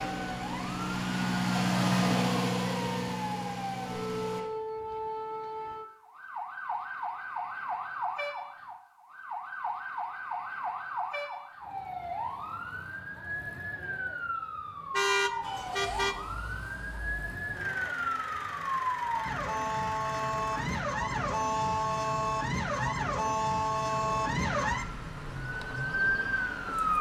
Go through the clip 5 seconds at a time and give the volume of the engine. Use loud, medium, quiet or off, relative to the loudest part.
loud, off, off, quiet, quiet, quiet.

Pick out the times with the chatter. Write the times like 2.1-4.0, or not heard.
not heard.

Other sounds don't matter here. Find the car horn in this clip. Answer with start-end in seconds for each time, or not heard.
14.9-16.1.